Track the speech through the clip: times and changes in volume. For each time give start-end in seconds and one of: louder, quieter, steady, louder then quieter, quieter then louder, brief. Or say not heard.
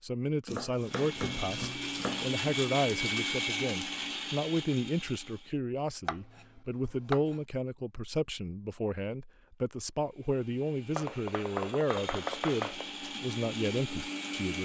0.0-14.5 steady.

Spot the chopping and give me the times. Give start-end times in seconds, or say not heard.
0.5-2.3, 6.0-7.4, 10.9-12.9.